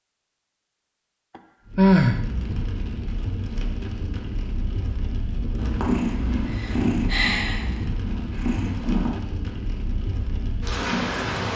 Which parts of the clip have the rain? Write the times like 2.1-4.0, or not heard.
1.6-11.5.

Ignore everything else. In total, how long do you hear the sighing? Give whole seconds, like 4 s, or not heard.
2 s.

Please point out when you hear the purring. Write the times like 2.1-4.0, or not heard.
5.5-9.1.